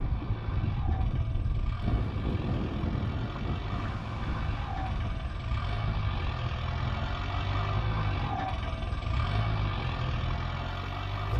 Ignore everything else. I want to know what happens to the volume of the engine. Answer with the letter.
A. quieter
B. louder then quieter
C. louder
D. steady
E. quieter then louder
C.